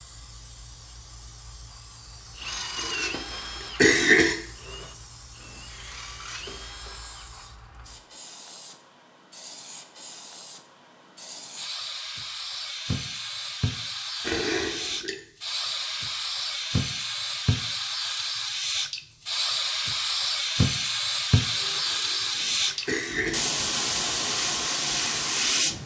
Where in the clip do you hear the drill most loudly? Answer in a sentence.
The volume of the drill peaks at 3 seconds.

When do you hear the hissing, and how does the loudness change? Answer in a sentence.
The hissing can be heard from 0.0 to 25.8 s, getting louder.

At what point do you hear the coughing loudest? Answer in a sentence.
The loudest moment of the coughing is at 4 seconds.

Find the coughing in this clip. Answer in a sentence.
You can hear the coughing from 2.8 to 4.3 s, from 14.2 to 15.2 s and from 21.9 to 23.6 s.